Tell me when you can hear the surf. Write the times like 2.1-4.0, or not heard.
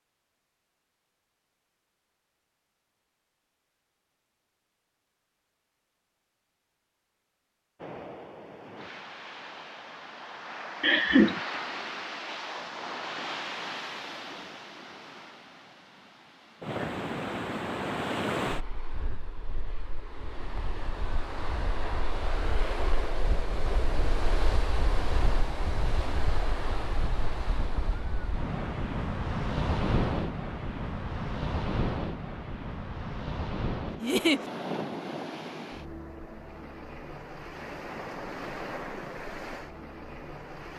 7.8-40.7.